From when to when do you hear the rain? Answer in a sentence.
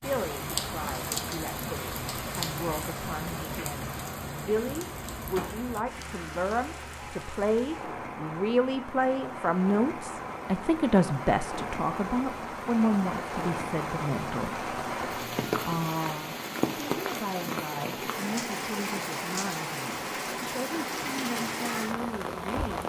You can hear the rain from 0.0 to 22.8 s.